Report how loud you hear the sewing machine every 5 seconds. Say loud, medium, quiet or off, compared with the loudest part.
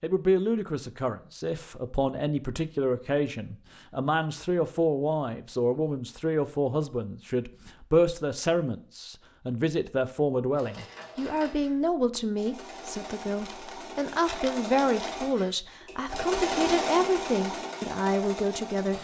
off, off, medium, loud.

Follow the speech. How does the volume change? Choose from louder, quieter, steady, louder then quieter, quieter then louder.
steady.